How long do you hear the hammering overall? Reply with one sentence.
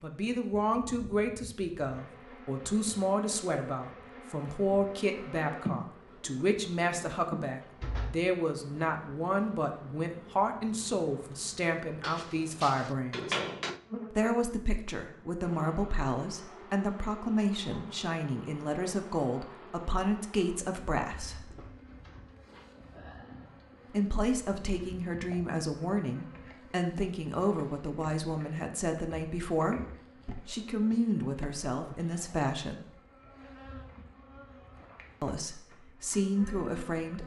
The hammering can be heard for 2 seconds in total.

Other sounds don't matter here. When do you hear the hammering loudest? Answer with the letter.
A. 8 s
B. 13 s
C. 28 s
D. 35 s
B.